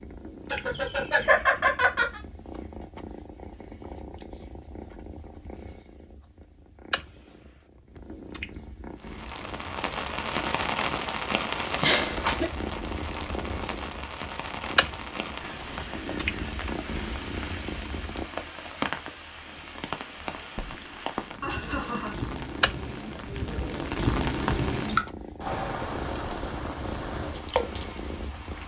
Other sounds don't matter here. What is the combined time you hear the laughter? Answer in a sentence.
You can hear the laughter for 3 seconds altogether.